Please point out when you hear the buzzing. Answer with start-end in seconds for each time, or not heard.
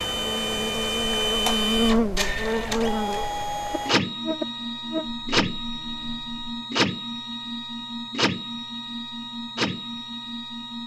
0.0-6.7.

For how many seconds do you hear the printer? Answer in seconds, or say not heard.
11 s.